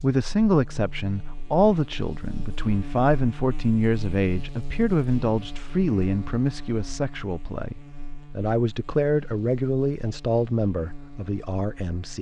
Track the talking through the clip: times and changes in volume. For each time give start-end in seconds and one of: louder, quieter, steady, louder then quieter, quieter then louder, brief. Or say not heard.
0.0-12.1 steady.